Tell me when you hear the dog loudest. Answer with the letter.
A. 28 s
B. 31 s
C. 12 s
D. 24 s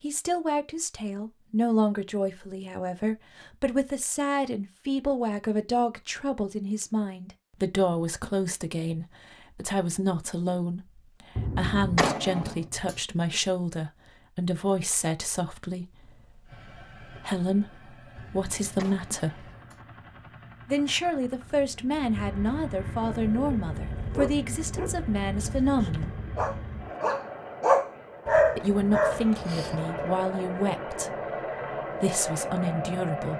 A.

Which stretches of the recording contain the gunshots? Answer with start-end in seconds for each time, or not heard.
11.3-13.0, 18.1-19.8.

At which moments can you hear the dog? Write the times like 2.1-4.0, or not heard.
23.1-30.1.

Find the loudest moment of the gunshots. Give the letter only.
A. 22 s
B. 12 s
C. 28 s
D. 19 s
B.